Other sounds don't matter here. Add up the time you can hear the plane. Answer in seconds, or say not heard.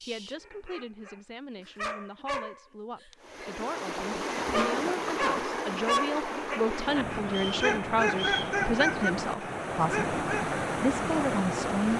not heard.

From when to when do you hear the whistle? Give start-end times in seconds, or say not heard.
7.2-8.6.